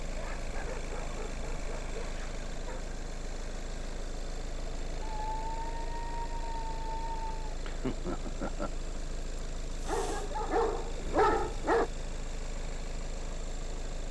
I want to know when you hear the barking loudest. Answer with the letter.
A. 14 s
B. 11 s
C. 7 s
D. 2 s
B.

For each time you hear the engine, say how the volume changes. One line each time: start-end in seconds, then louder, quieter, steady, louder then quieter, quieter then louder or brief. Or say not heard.
0.0-14.0 steady.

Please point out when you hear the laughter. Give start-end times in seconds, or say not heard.
7.7-8.7.